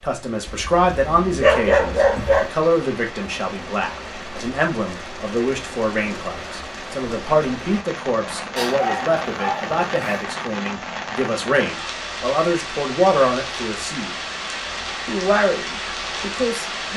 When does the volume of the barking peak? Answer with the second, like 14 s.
2 s.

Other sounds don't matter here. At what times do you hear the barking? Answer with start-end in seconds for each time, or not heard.
0.5-2.5, 8.6-10.2.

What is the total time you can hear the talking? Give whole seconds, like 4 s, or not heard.
16 s.